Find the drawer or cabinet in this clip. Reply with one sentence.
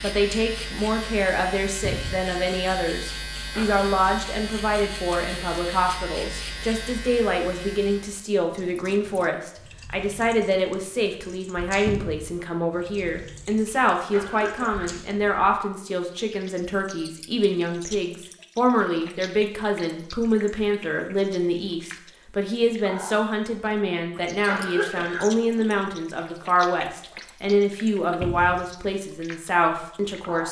You can hear the drawer or cabinet from 1.8 to 2.2 s, from 11.8 to 12.2 s and from 28.2 to 28.6 s.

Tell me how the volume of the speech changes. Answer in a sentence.
The loudness of the speech stays about the same.